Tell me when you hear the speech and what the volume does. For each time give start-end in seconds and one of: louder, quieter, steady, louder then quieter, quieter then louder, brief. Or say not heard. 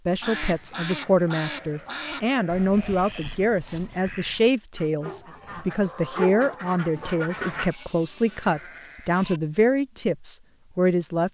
0.1-11.2 steady.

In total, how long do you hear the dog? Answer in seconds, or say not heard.
2 s.